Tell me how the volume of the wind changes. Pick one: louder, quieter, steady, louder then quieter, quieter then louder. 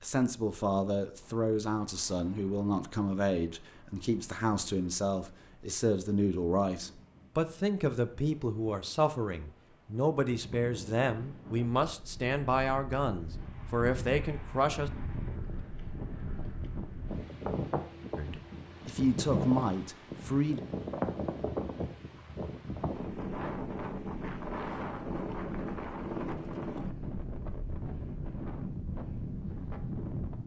louder.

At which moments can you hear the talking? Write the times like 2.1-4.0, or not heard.
0.0-14.9, 18.1-20.6.